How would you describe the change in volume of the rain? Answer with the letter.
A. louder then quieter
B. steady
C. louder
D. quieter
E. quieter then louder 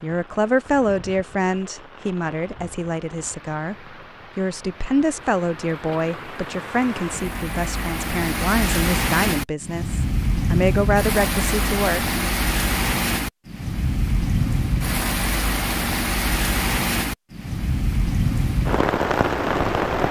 C.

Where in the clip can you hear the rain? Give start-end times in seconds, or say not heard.
0.0-20.0.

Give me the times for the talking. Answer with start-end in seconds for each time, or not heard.
0.0-12.2.